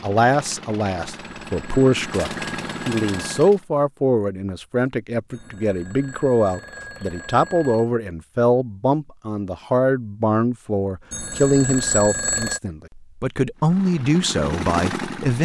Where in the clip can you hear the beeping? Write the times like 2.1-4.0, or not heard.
1.1-3.5, 5.3-7.9, 11.1-12.6.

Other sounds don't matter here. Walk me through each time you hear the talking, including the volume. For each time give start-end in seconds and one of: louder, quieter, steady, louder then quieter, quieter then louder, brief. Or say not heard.
0.0-15.4 steady.